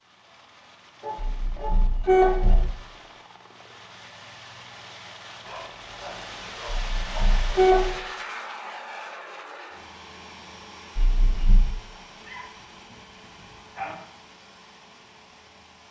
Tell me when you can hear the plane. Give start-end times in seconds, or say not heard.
0.0-15.8.